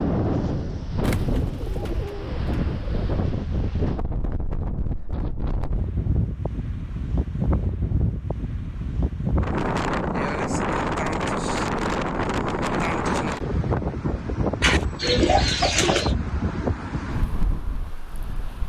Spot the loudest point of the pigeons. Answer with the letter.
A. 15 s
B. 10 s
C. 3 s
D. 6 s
A.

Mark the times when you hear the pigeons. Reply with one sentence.
You can hear the pigeons from 1.0 to 3.1 s and from 14.6 to 16.1 s.